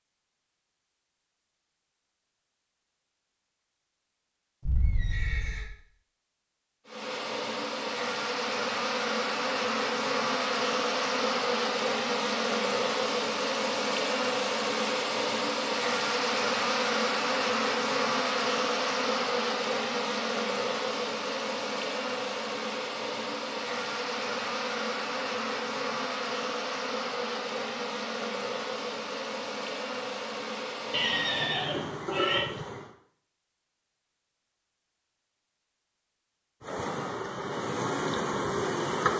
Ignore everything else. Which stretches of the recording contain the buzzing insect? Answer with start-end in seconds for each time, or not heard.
6.8-33.0, 36.6-39.1.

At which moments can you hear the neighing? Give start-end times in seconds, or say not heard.
4.7-5.7, 30.9-32.5.